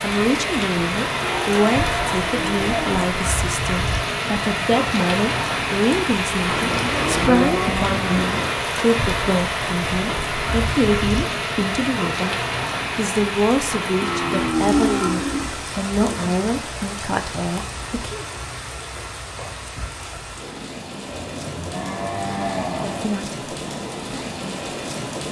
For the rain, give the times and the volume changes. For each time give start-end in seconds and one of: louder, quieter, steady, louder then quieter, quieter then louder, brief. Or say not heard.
0.0-25.2 quieter.